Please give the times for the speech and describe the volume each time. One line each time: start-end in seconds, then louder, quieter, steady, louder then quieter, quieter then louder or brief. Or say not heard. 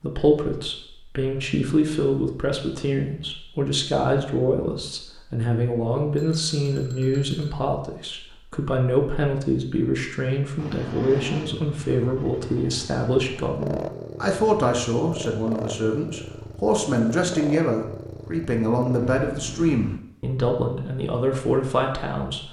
0.0-22.4 steady.